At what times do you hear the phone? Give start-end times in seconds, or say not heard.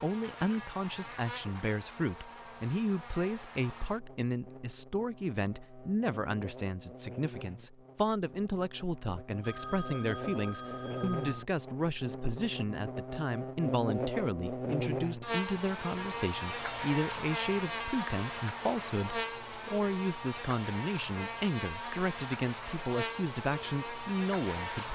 9.4-11.4.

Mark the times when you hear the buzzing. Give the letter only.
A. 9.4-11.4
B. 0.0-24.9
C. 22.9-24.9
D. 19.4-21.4
B.